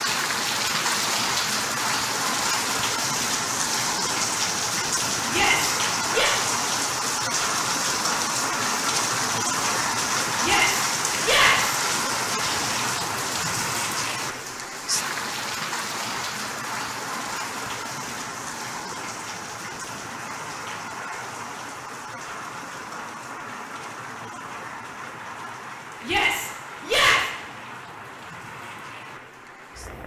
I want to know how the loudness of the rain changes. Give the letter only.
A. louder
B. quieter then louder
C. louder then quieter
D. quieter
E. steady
D.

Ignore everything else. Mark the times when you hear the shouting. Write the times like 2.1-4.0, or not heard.
5.2-6.3, 10.4-11.8, 26.0-27.3.